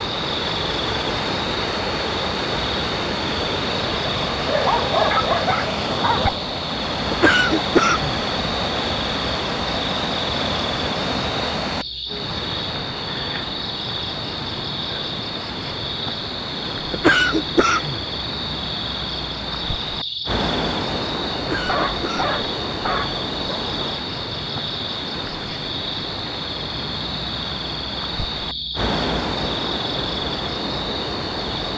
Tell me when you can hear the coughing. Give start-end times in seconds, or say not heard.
7.1-8.2, 16.9-18.1, 21.4-22.4.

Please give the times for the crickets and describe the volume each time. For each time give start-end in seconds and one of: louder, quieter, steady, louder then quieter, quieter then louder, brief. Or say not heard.
0.0-31.7 steady.